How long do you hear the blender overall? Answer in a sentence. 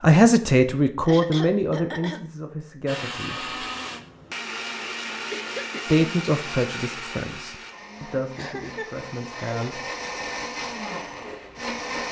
You can hear the blender for 9 seconds altogether.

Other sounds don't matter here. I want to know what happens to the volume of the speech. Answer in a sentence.
The volume of the speech goes down.